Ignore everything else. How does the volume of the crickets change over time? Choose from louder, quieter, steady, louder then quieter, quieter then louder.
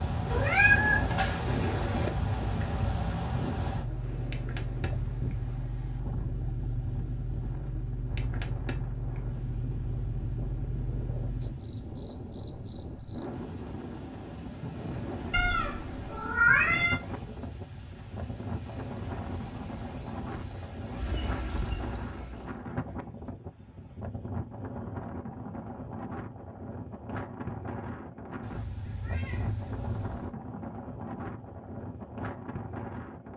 steady.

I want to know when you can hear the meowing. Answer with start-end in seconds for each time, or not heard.
0.2-2.1, 15.3-17.0, 28.4-30.4.